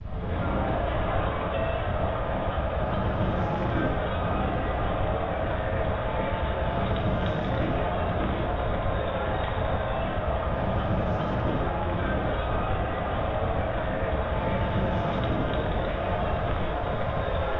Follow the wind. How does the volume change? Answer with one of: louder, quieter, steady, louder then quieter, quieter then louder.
steady.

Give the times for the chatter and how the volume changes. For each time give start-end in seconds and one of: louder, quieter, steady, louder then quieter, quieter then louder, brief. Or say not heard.
0.0-17.5 steady.